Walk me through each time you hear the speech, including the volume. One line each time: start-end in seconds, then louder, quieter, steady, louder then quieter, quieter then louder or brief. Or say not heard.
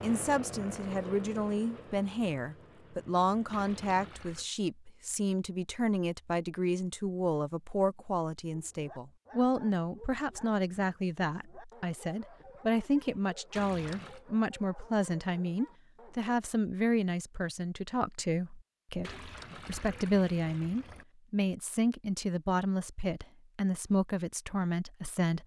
0.0-25.4 steady.